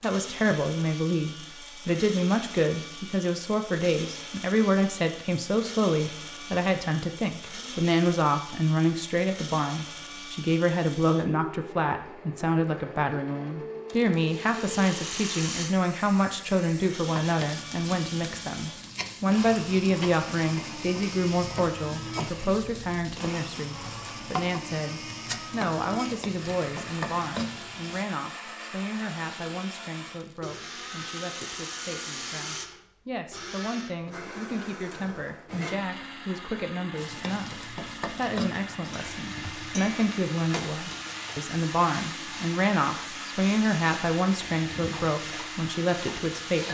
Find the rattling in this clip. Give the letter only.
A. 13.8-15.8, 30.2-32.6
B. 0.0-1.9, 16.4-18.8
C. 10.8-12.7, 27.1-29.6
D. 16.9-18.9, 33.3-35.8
A.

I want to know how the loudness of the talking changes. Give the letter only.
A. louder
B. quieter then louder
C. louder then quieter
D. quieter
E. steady
B.